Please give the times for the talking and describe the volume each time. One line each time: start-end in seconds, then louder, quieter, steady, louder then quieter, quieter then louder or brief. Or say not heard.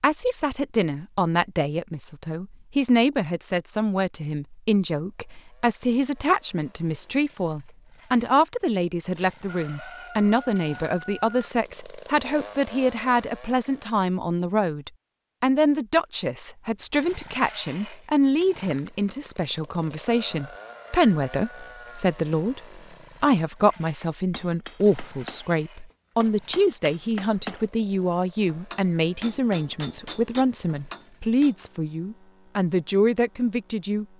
0.0-34.0 steady.